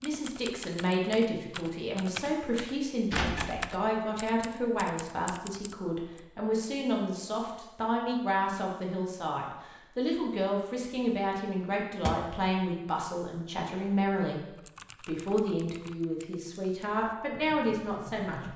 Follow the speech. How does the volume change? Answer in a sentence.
The loudness of the speech stays about the same.